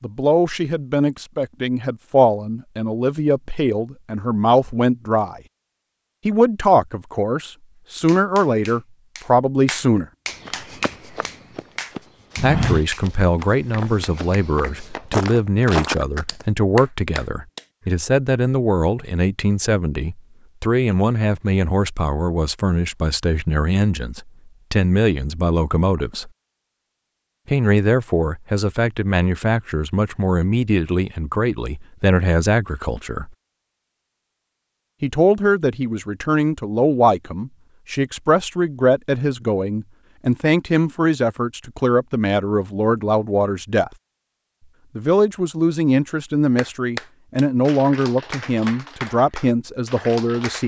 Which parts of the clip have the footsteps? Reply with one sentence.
You can hear the footsteps from 10.2 to 16.4 s.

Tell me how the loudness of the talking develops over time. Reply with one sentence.
The loudness of the talking stays about the same.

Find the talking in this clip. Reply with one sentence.
You can hear the talking from 0.0 to 5.4 s, from 6.2 to 10.1 s, from 12.4 to 26.3 s, from 27.4 to 33.3 s, from 35.0 to 43.9 s and from 45.0 to 50.6 s.